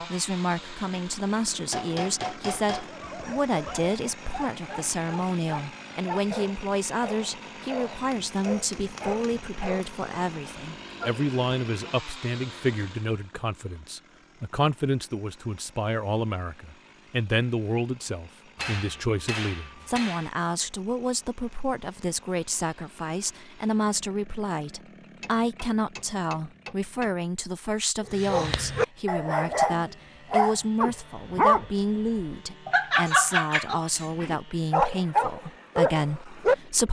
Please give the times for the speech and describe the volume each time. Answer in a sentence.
You can hear the speech from 0.0 to 36.8 s, at a steady volume.